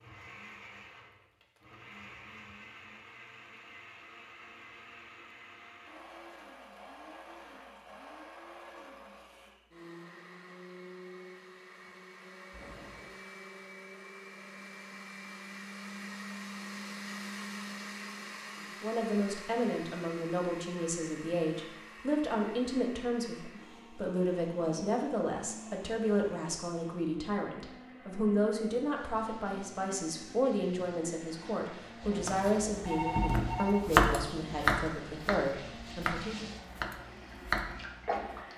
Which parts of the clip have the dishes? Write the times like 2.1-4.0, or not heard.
not heard.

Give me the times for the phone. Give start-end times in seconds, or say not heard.
12.5-13.2, 32.0-33.9.